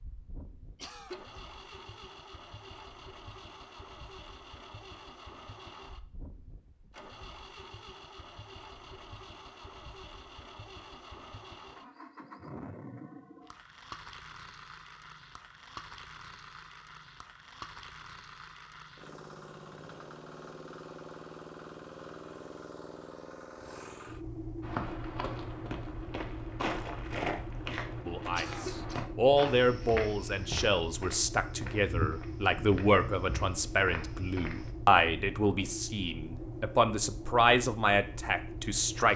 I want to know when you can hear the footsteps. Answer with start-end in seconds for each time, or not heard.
24.6-34.7.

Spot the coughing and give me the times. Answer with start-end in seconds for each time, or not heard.
0.8-1.4, 28.4-29.1.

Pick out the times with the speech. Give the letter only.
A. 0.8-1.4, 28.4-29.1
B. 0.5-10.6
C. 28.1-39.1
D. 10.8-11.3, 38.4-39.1
C.